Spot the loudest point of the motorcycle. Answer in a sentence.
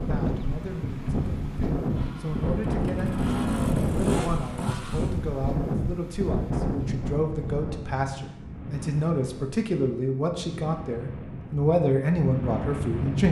The volume of the motorcycle peaks at 4 seconds.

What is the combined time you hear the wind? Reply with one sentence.
The wind can be heard for 13 seconds in total.